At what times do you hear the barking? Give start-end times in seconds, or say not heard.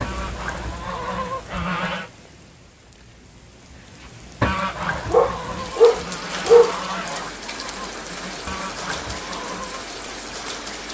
5.1-6.7.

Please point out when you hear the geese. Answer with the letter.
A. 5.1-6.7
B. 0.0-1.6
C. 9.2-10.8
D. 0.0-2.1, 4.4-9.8
D.